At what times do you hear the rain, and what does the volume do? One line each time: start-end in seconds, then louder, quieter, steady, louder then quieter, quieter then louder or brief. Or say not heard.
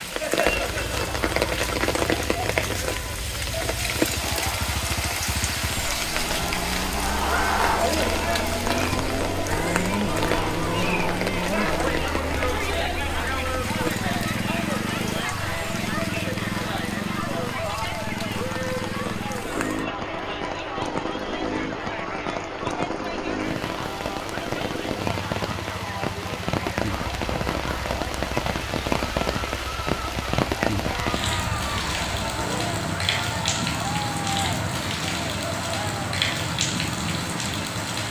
0.0-38.0 quieter then louder.